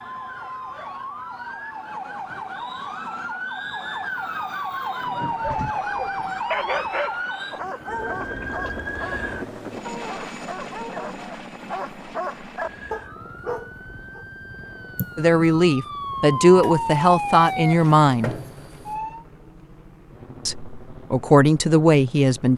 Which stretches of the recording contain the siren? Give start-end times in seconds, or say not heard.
0.0-9.6, 12.5-19.2.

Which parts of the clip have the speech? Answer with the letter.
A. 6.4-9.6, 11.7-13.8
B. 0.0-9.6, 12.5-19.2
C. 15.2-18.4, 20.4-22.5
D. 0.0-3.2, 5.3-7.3
C.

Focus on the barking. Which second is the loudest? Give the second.
7 s.